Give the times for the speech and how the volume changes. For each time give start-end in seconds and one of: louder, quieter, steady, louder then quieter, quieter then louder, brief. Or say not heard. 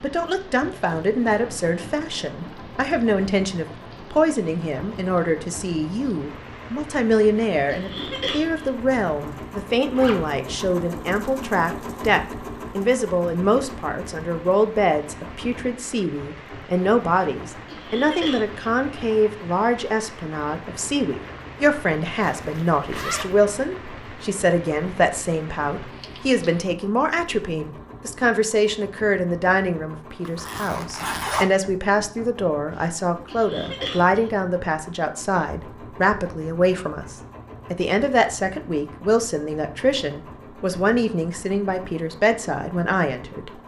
0.0-43.5 steady.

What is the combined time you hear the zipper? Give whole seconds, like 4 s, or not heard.
3 s.